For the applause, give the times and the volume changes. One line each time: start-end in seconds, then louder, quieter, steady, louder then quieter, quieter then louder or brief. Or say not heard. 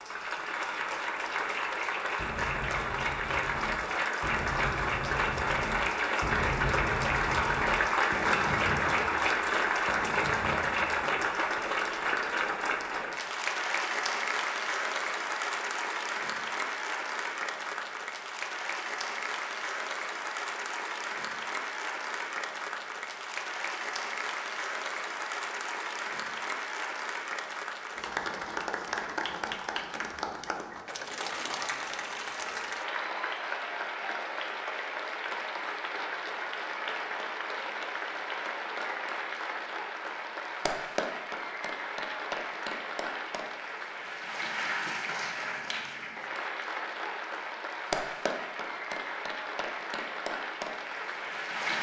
0.0-51.7 quieter.